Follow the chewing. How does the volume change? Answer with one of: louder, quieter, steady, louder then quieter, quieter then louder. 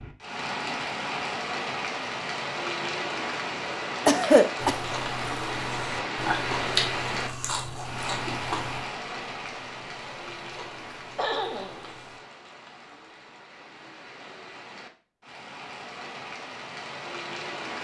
louder then quieter.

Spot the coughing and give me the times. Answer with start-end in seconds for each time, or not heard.
4.0-4.8, 11.2-11.9.